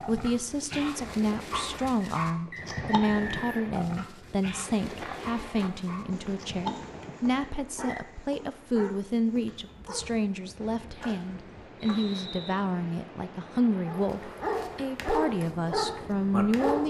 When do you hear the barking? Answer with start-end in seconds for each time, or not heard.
0.0-10.2, 13.8-16.8.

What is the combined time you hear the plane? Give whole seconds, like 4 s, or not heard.
not heard.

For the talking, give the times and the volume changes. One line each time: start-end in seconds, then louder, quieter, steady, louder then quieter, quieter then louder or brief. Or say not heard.
0.1-16.8 steady.